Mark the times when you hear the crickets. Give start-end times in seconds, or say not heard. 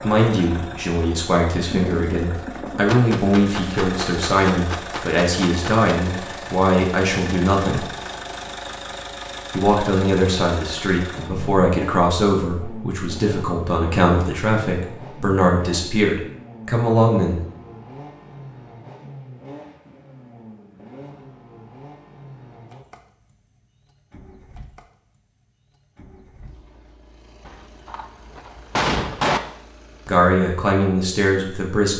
not heard.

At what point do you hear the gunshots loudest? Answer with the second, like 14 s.
29 s.